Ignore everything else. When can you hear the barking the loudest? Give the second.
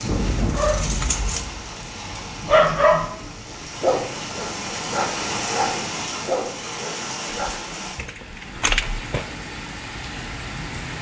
3 s.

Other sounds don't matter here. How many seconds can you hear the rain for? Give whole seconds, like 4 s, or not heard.
11 s.